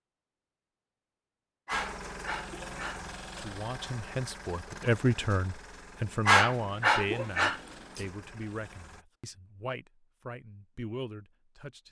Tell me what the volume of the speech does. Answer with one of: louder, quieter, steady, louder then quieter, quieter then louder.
louder then quieter.